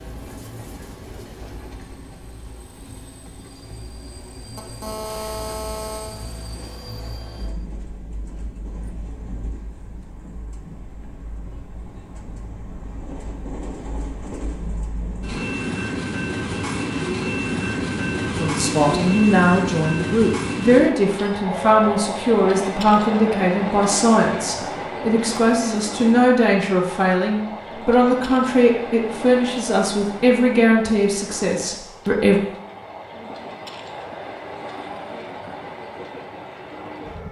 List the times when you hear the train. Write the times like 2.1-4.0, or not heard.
0.0-37.2.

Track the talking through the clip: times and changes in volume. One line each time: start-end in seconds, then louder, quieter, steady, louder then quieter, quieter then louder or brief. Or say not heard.
18.4-32.4 steady.